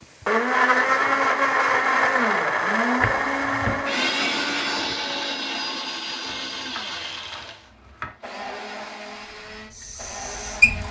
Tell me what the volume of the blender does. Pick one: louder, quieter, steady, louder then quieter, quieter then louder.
quieter.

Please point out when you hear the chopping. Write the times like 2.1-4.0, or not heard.
3.0-3.9, 6.2-8.2.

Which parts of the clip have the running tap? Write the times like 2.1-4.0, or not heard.
9.2-10.8.